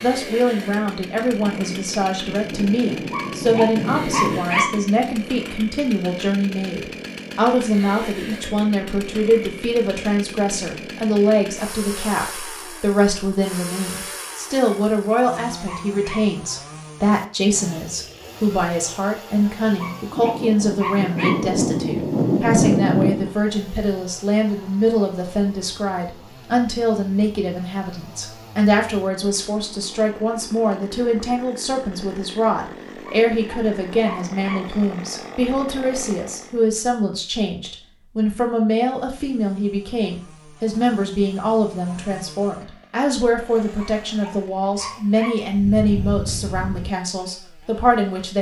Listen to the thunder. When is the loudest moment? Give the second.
23 s.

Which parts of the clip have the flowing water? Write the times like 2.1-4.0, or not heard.
not heard.